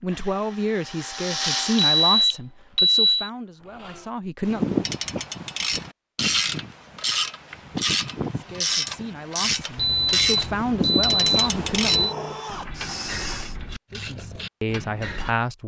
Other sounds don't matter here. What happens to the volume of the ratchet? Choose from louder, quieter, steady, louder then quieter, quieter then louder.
quieter.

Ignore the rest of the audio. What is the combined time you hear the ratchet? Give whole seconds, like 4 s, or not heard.
11 s.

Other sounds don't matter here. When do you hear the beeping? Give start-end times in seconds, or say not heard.
1.8-3.3, 9.8-12.1.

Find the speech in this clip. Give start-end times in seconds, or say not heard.
0.0-4.8, 8.4-12.1, 13.9-15.6.